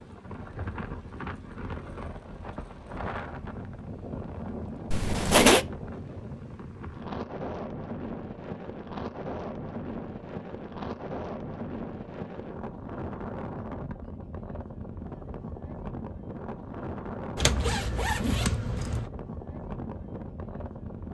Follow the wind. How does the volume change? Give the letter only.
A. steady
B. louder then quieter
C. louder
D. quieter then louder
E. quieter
A.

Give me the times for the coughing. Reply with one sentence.
You can't hear the coughing here.